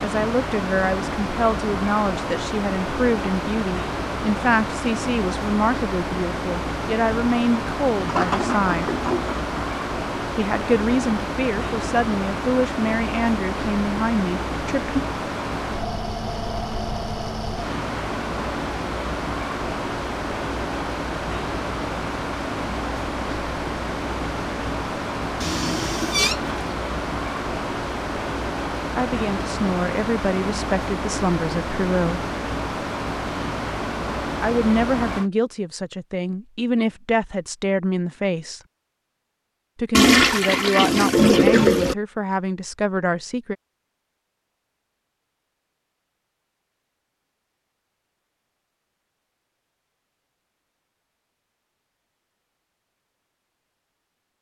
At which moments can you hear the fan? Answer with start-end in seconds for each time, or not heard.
0.0-35.3.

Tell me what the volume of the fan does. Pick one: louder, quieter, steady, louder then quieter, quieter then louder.
steady.